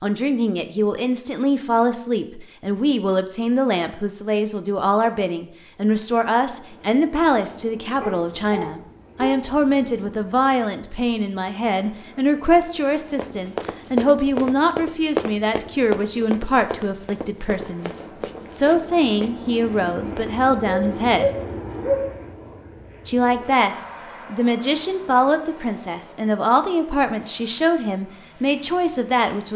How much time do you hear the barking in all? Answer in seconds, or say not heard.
3 s.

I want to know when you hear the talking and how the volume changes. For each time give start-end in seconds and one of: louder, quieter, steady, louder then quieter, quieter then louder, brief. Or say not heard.
0.0-21.3 steady
23.1-29.5 steady.